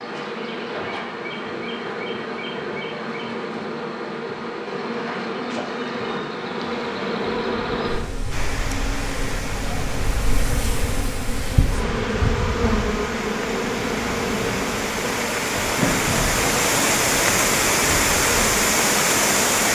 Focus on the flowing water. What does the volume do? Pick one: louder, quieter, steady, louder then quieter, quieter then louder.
louder.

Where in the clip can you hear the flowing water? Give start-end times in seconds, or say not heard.
8.3-19.7.